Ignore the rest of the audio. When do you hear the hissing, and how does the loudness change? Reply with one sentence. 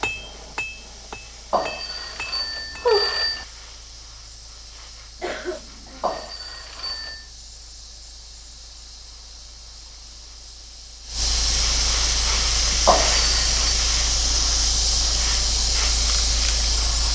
The hissing can be heard from 0.0 to 17.1 s, getting louder.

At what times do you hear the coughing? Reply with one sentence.
The coughing can be heard from 5.2 to 6.1 s.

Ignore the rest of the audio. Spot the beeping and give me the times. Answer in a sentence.
The beeping can be heard from 1.5 to 3.5 s, from 6.0 to 7.2 s and from 12.8 to 13.8 s.